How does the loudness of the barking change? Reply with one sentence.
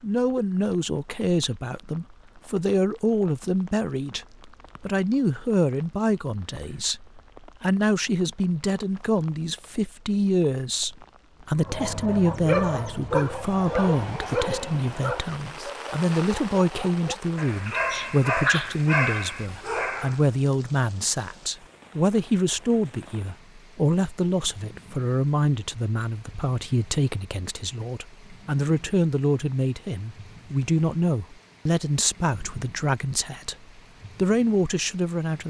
The volume of the barking goes down, then up.